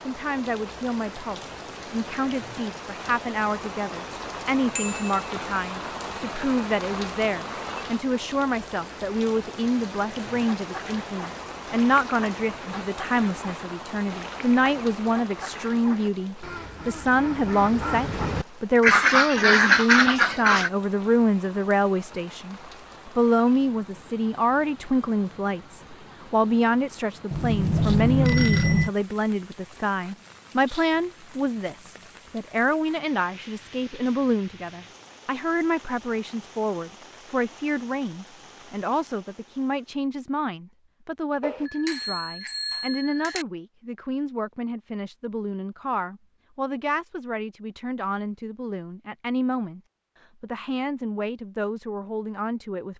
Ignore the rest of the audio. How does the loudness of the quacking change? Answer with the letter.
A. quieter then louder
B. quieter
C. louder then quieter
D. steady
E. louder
E.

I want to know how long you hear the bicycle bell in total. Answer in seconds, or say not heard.
4 s.